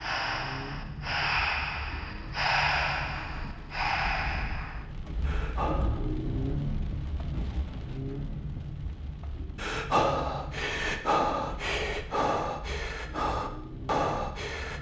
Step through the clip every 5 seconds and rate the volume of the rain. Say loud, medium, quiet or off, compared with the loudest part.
medium, loud, medium.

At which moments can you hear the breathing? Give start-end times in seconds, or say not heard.
0.0-6.1, 9.6-14.7.